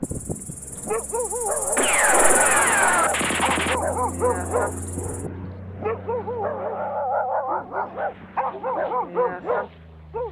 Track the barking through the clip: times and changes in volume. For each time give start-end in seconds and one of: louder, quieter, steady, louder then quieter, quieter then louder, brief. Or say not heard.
0.0-10.2 steady.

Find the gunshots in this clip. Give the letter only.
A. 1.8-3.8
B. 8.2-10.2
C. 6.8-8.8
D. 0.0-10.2
A.